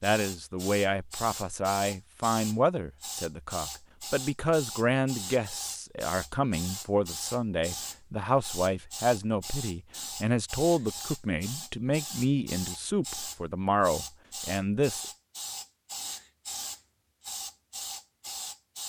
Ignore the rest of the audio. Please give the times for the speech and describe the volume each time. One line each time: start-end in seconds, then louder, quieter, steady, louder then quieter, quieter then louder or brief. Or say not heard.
0.0-15.1 steady.